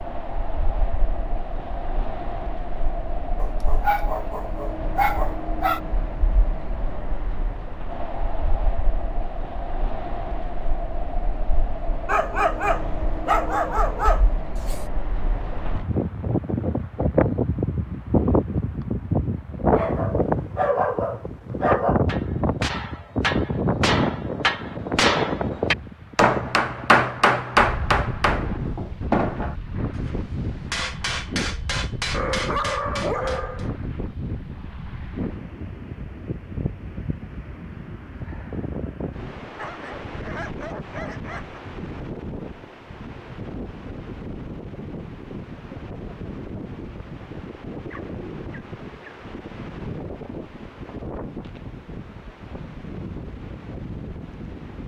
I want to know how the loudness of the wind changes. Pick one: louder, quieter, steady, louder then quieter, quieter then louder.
louder then quieter.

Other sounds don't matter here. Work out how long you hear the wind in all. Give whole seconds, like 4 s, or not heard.
55 s.